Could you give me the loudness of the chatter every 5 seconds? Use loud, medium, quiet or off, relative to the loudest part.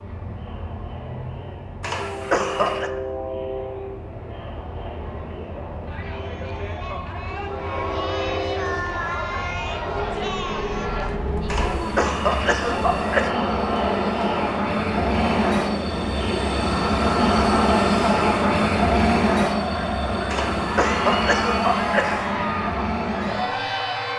quiet, loud, loud, loud, loud.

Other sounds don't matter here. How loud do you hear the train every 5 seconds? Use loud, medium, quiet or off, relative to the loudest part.
quiet, quiet, medium, loud, medium.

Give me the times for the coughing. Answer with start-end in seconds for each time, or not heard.
1.8-2.9, 11.4-13.3, 20.3-22.3.